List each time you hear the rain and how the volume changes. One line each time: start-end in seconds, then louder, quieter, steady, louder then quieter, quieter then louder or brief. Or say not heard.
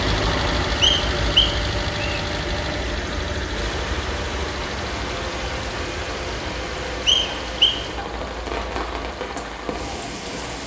3.5-10.6 steady.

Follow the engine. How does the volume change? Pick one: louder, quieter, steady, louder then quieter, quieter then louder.
quieter.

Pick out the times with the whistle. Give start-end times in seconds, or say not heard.
0.8-2.2, 7.0-7.8.